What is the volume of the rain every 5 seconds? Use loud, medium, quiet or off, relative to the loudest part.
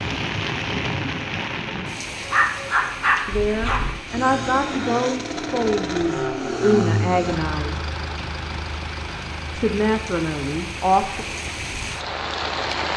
loud, medium, loud.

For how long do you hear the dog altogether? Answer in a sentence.
You can hear the dog for 2 seconds altogether.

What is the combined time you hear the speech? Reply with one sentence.
The speech can be heard for 6 seconds in total.